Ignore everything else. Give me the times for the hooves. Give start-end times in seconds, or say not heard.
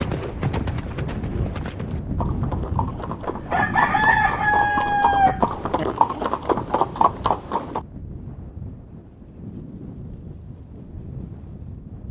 0.0-7.8.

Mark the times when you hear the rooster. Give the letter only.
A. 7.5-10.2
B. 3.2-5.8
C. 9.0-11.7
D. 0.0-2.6
B.